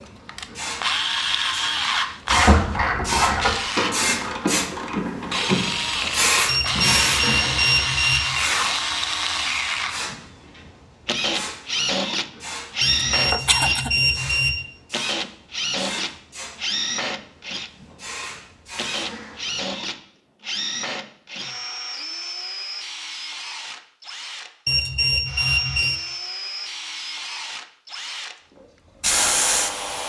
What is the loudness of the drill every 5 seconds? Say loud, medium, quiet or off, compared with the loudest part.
loud, loud, loud, loud, medium, medium.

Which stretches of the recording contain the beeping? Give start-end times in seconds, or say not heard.
6.5-8.4, 12.8-14.6, 24.6-26.0.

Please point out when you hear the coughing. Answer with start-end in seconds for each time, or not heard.
13.3-14.3.